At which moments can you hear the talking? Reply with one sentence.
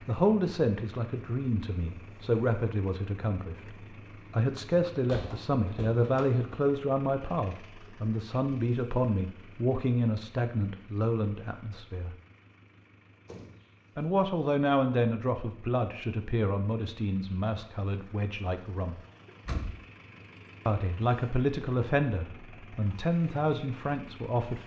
You can hear the talking from 0.1 to 12.2 s, from 13.9 to 18.9 s and from 20.6 to 24.6 s.